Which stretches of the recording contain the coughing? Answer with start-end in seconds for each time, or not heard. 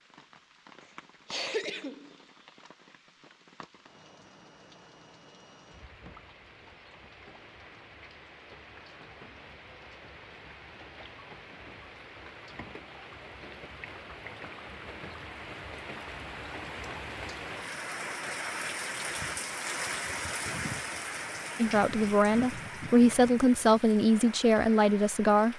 1.2-2.1.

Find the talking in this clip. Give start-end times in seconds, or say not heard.
21.6-25.5.